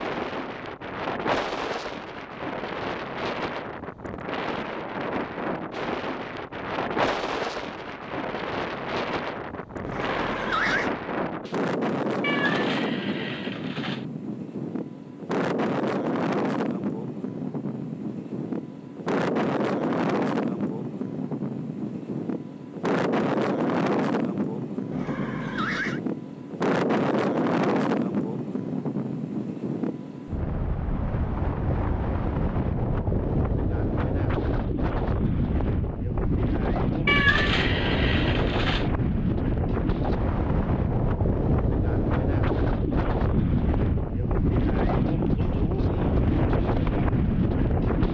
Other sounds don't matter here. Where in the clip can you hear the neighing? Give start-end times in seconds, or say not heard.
9.8-10.9, 24.9-26.0.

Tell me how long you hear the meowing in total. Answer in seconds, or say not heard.
4 s.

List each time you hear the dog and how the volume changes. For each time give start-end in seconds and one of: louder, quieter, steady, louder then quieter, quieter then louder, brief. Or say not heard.
not heard.